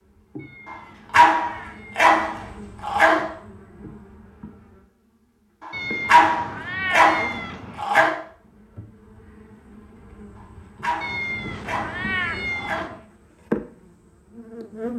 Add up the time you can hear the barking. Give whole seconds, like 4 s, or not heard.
8 s.